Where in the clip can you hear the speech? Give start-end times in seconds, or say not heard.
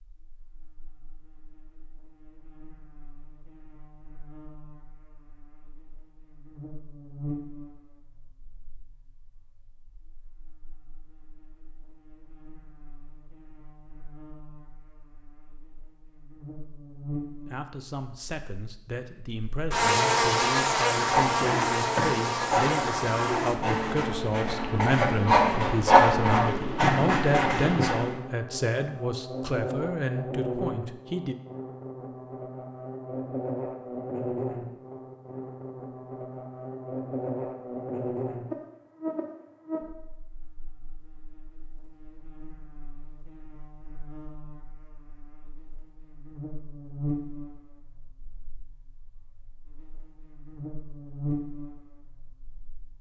17.4-31.4.